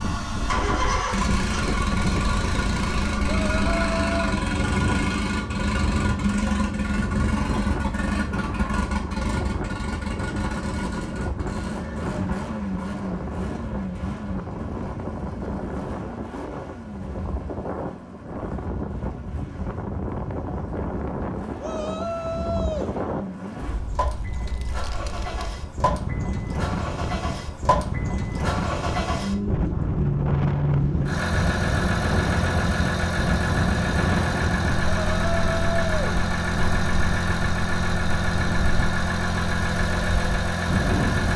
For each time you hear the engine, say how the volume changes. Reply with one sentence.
You can hear the engine from 0.0 to 41.3 s, getting quieter then louder.